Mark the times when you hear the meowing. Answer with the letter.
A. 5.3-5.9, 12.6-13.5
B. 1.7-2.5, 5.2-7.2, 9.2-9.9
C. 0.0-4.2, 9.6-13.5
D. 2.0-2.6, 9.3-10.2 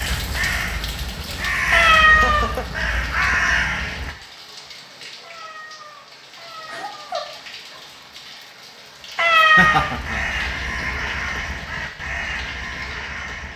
B.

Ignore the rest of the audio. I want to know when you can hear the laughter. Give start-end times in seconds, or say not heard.
2.0-2.6, 9.3-10.2.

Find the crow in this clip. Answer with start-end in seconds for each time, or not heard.
0.0-4.2, 9.6-13.5.